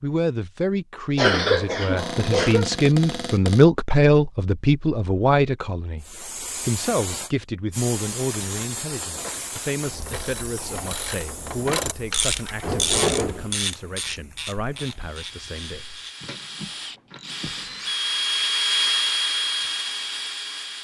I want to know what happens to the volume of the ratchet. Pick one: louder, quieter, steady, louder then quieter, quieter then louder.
louder then quieter.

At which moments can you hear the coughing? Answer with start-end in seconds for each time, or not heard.
1.1-2.7.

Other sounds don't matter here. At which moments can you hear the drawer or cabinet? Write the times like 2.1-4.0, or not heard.
1.9-3.6, 12.6-13.5.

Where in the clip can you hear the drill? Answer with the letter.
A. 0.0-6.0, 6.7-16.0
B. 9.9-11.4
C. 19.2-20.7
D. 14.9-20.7
D.